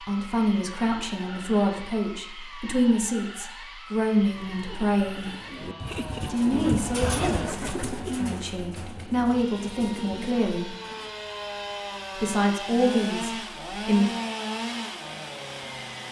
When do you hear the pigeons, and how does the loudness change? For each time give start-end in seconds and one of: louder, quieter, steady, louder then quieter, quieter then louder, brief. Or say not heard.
4.3-11.1 louder then quieter.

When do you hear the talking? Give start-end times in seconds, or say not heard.
0.1-5.3, 6.2-10.8, 12.2-14.1.